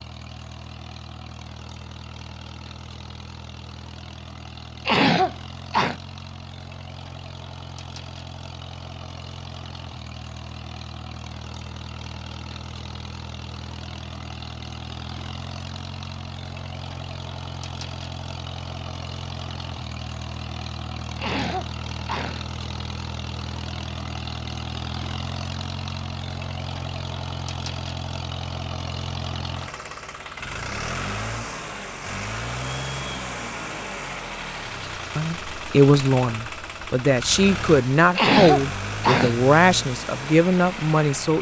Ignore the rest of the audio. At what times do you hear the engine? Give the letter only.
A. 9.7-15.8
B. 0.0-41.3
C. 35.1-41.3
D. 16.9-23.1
B.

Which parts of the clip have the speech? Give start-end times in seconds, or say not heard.
35.1-41.3.